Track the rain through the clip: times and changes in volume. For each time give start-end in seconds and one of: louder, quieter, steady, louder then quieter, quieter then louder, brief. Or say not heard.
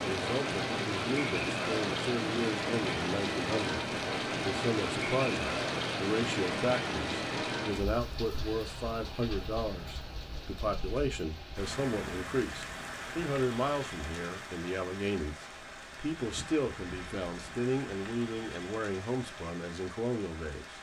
0.0-20.7 quieter.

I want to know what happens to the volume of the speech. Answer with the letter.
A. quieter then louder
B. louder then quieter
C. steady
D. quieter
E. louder
C.